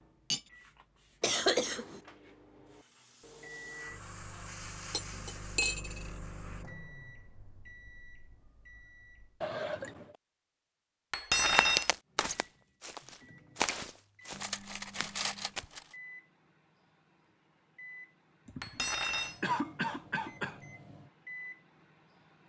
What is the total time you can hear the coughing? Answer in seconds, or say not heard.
4 s.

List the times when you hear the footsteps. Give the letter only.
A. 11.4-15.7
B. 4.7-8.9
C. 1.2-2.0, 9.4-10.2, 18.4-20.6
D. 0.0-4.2
A.